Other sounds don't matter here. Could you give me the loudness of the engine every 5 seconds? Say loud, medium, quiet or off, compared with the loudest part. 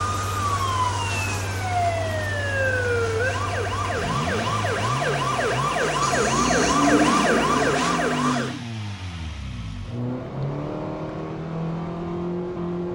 medium, medium, loud.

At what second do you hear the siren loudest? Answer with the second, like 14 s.
7 s.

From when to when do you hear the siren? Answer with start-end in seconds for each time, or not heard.
0.0-8.6.